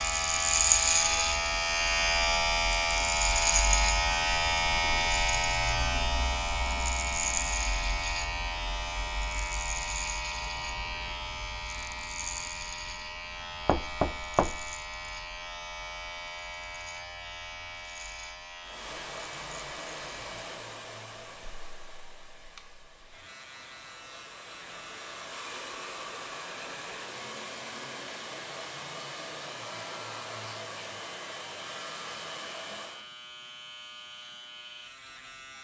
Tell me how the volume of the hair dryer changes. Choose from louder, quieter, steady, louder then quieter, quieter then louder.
quieter then louder.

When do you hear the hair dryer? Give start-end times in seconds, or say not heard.
18.6-33.1.